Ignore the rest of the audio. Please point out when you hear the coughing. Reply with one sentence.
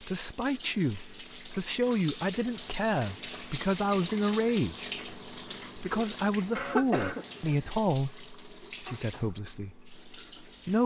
The coughing can be heard from 6.5 to 7.8 s.